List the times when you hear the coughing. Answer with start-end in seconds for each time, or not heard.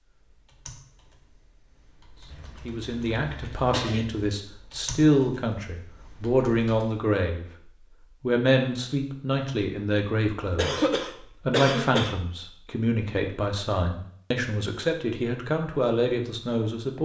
2.3-4.3, 10.6-12.2.